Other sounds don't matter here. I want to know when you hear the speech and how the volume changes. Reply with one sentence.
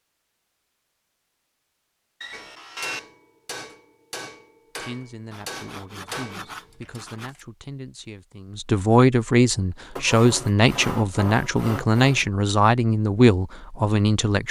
You can hear the speech from 4.8 to 14.4 s, getting louder.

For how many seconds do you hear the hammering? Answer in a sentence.
The hammering can be heard for 5 seconds in total.